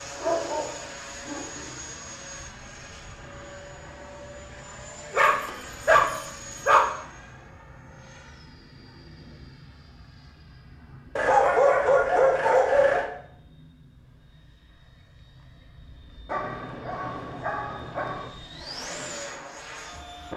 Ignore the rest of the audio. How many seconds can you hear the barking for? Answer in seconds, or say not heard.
7 s.